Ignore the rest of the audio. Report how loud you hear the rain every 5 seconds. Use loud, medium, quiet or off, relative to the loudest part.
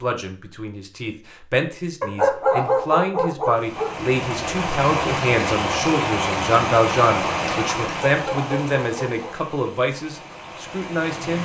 loud, loud, medium.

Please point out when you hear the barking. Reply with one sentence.
The barking can be heard from 2.0 to 4.0 s and from 7.8 to 9.3 s.